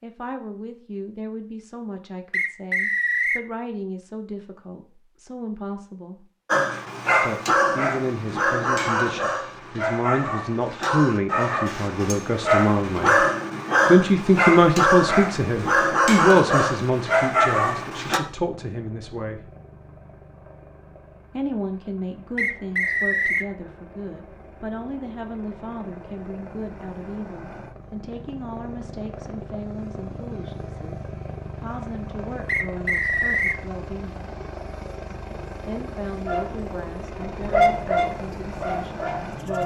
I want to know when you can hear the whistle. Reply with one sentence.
The whistle can be heard from 2.3 to 3.5 s, from 22.4 to 23.5 s and from 32.5 to 33.6 s.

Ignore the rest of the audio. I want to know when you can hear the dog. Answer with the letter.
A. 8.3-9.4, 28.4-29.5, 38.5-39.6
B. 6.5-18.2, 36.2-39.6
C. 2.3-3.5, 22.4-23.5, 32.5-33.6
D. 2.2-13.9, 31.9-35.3
B.